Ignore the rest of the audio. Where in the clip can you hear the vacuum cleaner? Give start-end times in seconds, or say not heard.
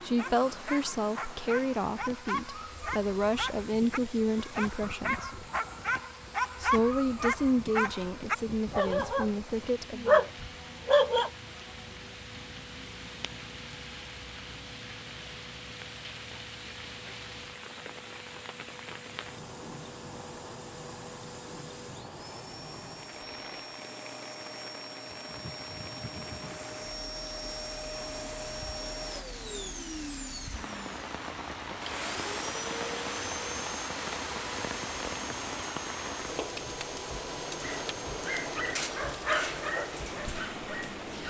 0.0-41.2.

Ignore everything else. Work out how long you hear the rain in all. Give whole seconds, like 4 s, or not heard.
41 s.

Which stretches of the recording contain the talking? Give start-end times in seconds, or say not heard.
0.0-5.3, 6.6-10.2.